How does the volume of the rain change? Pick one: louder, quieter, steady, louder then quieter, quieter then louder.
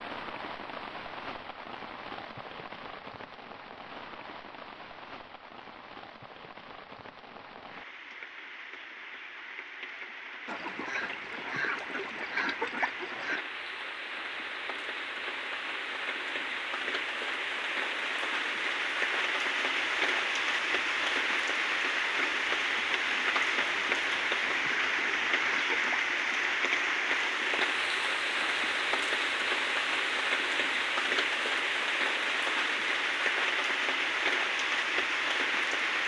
louder.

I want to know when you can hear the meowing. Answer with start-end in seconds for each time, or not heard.
not heard.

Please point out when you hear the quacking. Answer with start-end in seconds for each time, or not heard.
10.4-13.4, 23.6-26.1.